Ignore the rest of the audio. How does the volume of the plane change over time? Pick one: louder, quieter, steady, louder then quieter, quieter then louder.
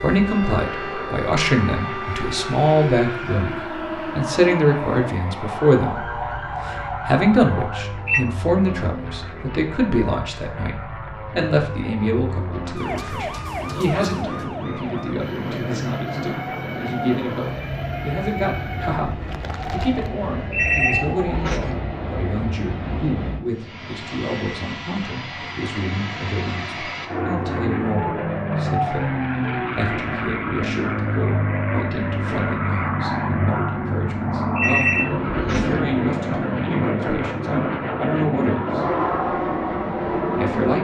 louder.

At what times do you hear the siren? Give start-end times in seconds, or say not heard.
0.0-7.8, 12.8-21.6.